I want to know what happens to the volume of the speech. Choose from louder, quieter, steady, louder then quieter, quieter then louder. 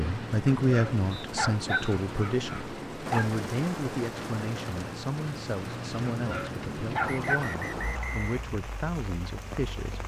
quieter.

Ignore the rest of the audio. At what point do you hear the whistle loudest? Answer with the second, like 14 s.
8 s.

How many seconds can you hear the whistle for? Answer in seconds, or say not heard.
2 s.